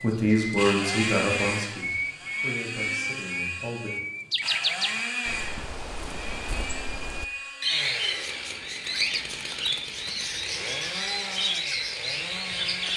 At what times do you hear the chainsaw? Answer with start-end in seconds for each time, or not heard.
0.0-12.9.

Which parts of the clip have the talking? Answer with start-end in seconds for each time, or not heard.
0.0-3.9.